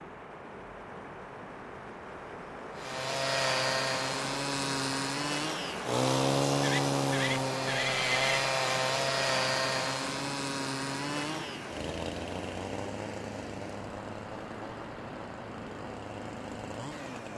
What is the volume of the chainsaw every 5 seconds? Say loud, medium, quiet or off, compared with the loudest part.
loud, loud, medium, quiet.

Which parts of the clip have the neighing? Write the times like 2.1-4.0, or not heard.
6.6-8.4.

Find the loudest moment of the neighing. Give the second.
8 s.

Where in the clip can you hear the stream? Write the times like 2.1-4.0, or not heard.
0.0-17.3.